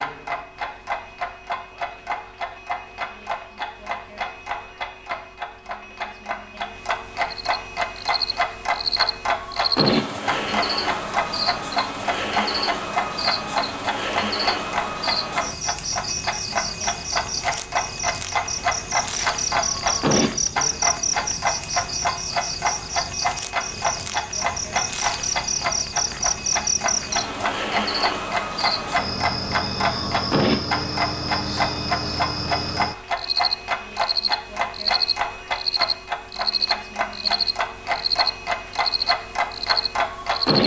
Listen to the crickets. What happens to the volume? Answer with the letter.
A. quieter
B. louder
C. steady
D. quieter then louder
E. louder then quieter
C.